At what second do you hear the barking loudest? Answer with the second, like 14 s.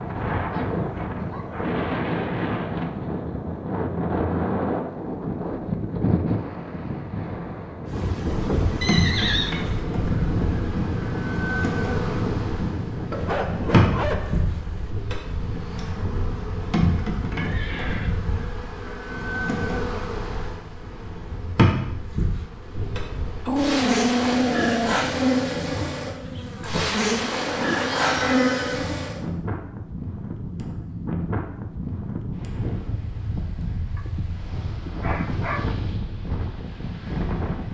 24 s.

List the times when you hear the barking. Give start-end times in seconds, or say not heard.
0.3-1.8, 13.1-14.9, 23.4-25.0, 34.0-35.6.